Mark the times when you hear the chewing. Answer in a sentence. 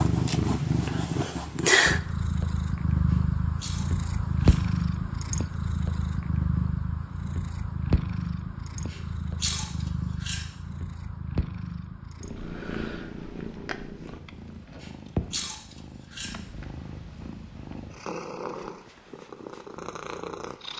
The chewing can be heard from 3.1 to 4.7 s, from 8.9 to 10.4 s and from 14.8 to 16.4 s.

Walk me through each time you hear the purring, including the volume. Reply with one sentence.
You can hear the purring from 0.0 to 20.7 s, getting quieter.